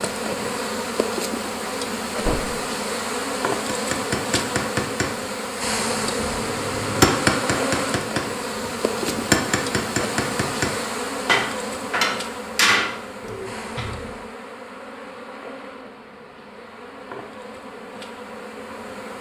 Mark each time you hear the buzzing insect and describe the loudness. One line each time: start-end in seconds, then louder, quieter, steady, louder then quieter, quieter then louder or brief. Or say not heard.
0.0-19.1 quieter.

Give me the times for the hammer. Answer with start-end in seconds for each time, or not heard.
3.6-12.9.